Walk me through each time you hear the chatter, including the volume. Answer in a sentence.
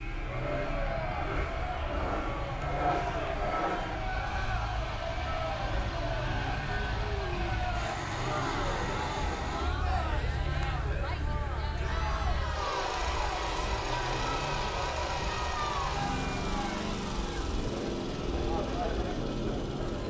You can hear the chatter from 0.1 to 20.0 s, at a steady volume.